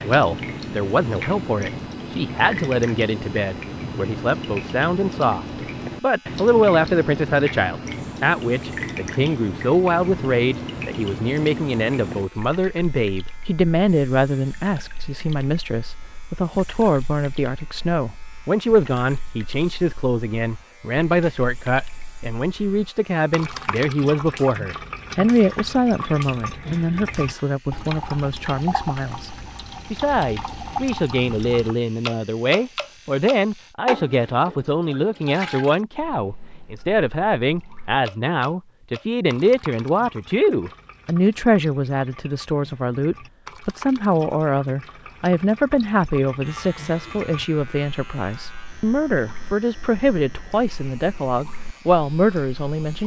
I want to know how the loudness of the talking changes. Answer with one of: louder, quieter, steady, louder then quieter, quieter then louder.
steady.